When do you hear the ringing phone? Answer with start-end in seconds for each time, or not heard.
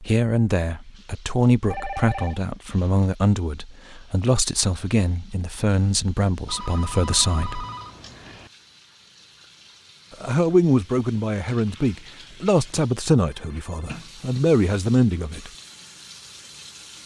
1.7-2.4, 6.5-8.5, 13.3-14.0.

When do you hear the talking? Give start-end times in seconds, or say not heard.
0.0-7.7, 10.2-15.5.